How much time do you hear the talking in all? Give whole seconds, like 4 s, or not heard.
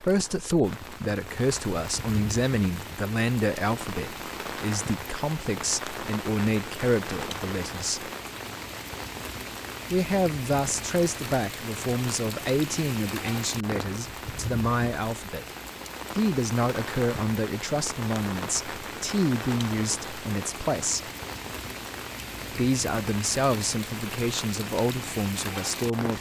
22 s.